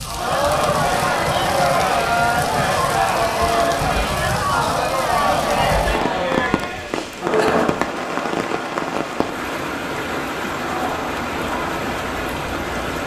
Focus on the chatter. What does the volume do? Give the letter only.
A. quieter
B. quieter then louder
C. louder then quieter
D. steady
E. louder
A.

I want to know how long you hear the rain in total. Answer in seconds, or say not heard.
13 s.